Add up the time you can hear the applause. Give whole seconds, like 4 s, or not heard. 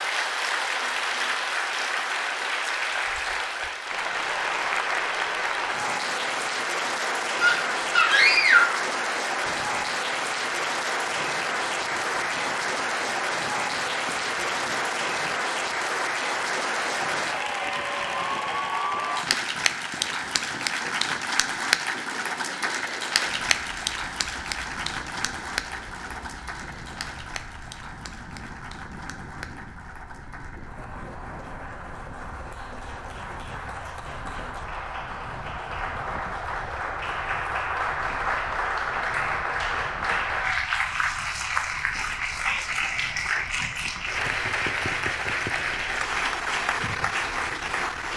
48 s.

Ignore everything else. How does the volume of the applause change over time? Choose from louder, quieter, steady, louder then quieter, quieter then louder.
quieter then louder.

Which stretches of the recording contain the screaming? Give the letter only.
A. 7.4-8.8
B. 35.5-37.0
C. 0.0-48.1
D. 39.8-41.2
A.